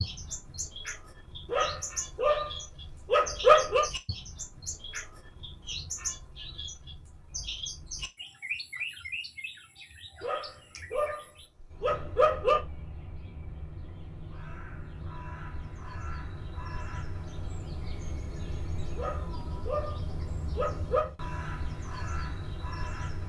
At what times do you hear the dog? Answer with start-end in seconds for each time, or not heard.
1.5-3.9, 10.2-12.6, 18.9-21.1.